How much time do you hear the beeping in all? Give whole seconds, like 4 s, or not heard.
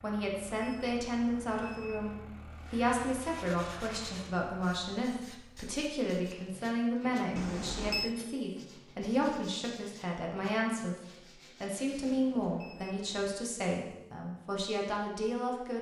4 s.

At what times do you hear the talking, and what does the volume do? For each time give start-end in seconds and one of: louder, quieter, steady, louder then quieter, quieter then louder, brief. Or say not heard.
0.0-15.7 steady.